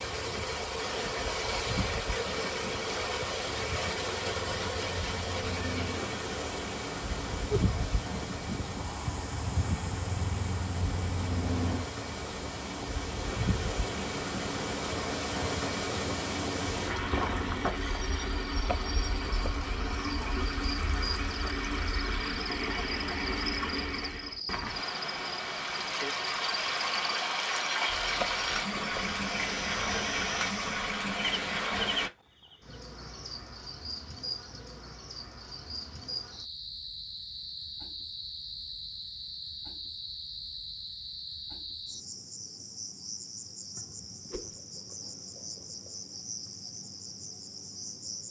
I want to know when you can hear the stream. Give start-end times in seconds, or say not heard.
0.0-32.1.